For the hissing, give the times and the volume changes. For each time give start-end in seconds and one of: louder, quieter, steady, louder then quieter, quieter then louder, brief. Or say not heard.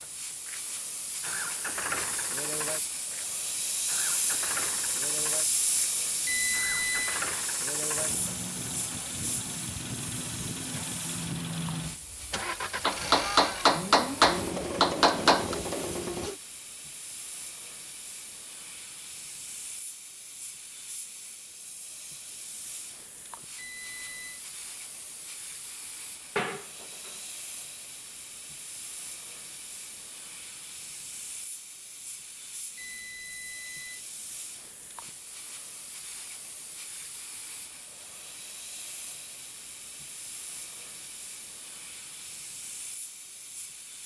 0.0-44.0 quieter.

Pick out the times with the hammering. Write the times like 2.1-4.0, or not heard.
12.8-15.6, 26.4-27.1.